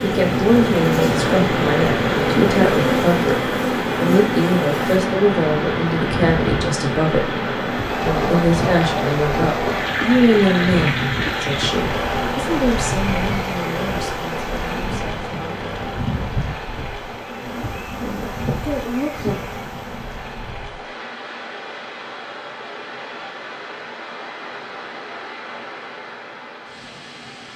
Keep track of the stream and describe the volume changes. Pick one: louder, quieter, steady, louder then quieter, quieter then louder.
quieter.